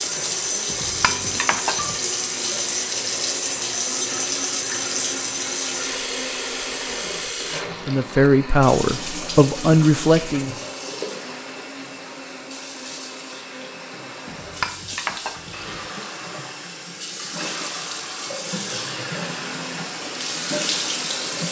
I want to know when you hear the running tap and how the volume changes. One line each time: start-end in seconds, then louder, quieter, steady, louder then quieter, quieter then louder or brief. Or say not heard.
0.0-21.4 quieter then louder.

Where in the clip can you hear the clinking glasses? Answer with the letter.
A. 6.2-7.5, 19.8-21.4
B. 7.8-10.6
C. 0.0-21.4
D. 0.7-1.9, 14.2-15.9
D.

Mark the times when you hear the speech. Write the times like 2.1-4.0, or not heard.
7.8-10.6.